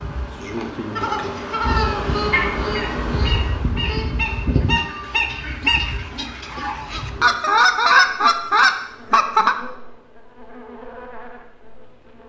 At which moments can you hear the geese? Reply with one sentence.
The geese can be heard from 0.9 to 9.6 s.